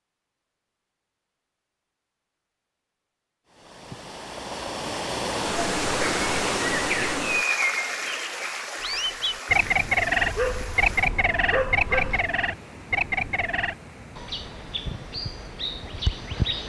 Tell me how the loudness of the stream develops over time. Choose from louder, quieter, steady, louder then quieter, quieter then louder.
quieter.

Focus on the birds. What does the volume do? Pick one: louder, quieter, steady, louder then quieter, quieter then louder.
louder then quieter.